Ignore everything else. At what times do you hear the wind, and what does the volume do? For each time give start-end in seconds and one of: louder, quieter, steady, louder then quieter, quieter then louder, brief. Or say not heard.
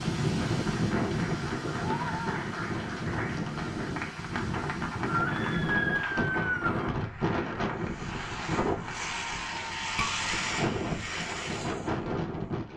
0.0-12.7 steady.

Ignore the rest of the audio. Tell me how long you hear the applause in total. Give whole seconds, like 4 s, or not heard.
9 s.